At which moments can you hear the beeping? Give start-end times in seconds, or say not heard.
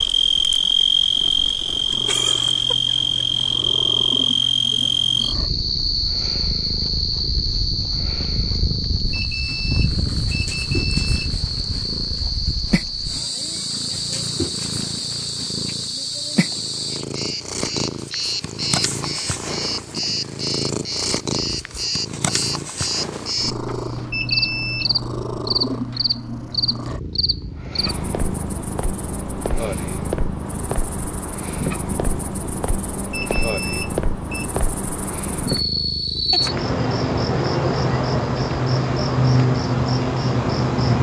9.1-11.3, 24.1-24.9, 33.1-34.5.